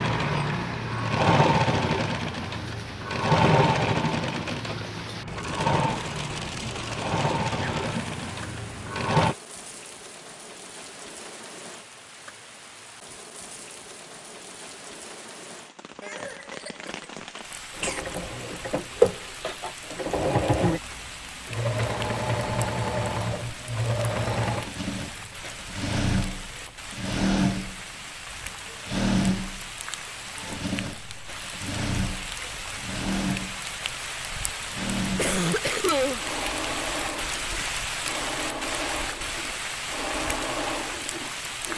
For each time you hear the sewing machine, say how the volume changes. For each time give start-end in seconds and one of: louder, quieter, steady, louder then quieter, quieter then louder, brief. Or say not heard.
0.0-9.3 quieter
17.8-41.7 quieter.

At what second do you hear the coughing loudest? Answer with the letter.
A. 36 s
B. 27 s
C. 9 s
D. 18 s
A.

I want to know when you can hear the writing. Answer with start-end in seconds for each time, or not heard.
not heard.